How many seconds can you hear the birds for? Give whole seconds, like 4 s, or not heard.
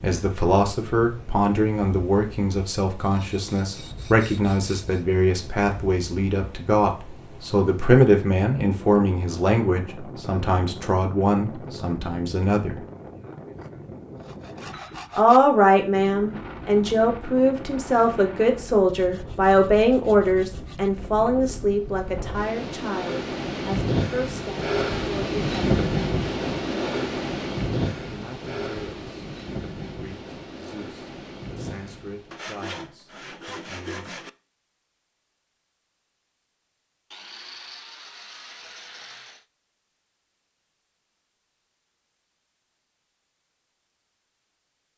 not heard.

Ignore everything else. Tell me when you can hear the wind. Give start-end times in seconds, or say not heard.
0.0-32.5.